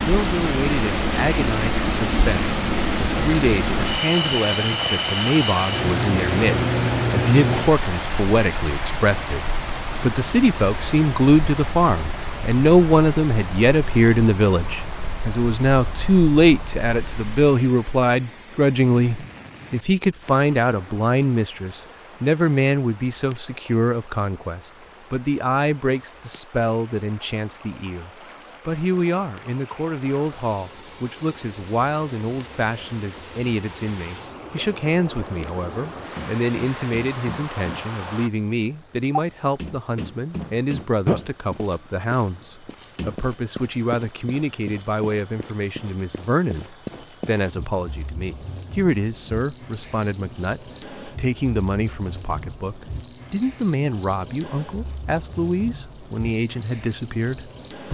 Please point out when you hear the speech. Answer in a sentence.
You can hear the speech from 0.1 to 57.8 s.